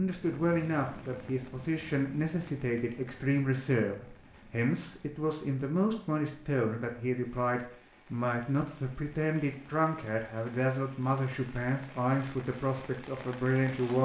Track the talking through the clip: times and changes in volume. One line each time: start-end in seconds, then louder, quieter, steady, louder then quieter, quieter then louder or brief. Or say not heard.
0.0-14.0 steady.